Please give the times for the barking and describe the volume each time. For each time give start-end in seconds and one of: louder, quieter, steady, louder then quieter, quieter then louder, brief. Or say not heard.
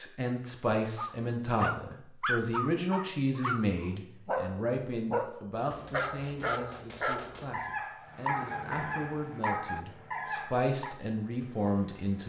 0.9-11.0 steady.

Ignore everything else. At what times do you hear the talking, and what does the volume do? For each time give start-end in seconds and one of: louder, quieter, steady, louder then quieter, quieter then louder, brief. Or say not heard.
0.0-12.2 quieter then louder.